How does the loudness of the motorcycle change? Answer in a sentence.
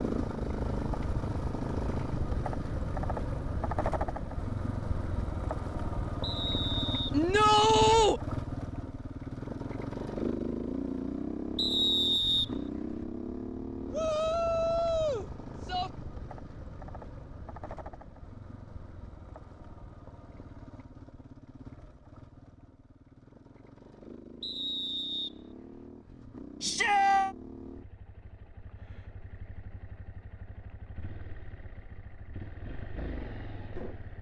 The loudness of the motorcycle goes down.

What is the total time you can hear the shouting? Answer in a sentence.
The shouting can be heard for 4 seconds in total.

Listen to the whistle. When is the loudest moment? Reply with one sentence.
The volume of the whistle peaks at 12 seconds.